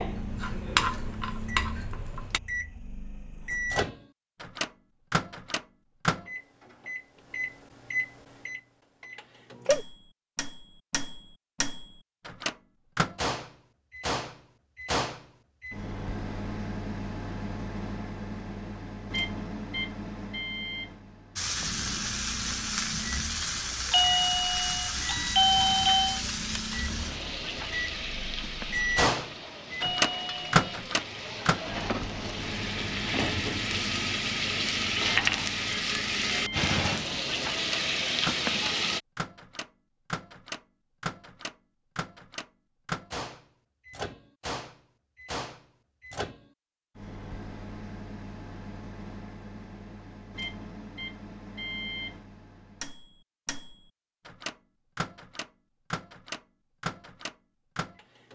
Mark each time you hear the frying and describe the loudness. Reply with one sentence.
You can hear the frying briefly from 0.0 to 2.4 s; and from 21.4 to 39.0 s, getting quieter then louder.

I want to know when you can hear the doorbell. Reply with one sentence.
You can hear the doorbell from 23.9 to 26.2 s and from 29.8 to 30.6 s.